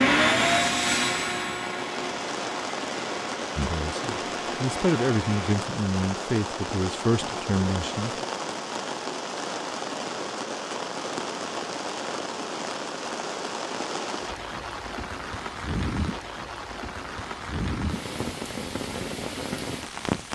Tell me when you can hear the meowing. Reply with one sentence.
You can't hear the meowing here.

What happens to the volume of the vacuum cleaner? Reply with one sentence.
The loudness of the vacuum cleaner goes down.